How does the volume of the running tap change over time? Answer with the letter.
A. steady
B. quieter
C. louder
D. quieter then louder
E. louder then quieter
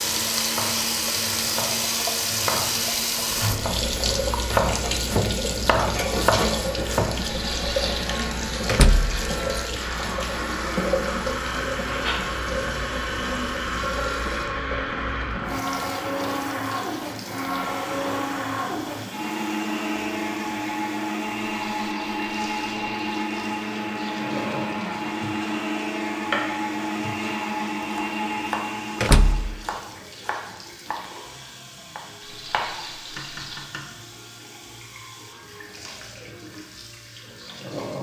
B.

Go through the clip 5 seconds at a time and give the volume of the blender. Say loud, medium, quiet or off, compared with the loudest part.
medium, medium, loud, loud, loud, loud, off, off.